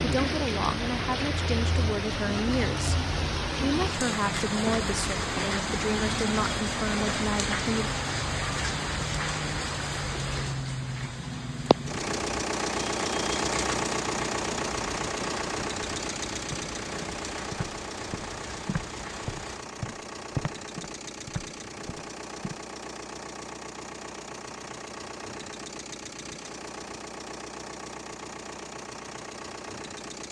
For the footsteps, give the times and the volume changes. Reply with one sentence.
The footsteps can be heard from 16.5 to 22.6 s, getting louder then quieter.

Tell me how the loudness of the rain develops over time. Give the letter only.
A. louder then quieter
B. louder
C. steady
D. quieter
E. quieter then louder
D.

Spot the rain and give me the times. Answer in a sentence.
You can hear the rain from 0.0 to 19.6 s.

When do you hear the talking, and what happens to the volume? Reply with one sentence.
The talking can be heard from 0.0 to 7.9 s, at a steady volume.